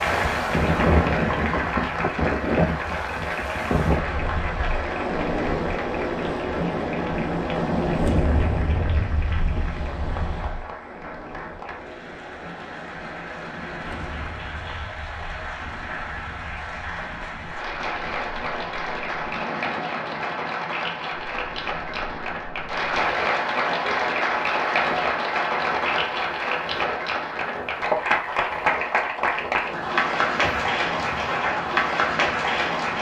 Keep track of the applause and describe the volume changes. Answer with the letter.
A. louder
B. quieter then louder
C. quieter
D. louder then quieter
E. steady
B.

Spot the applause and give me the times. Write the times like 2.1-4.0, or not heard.
0.0-32.9.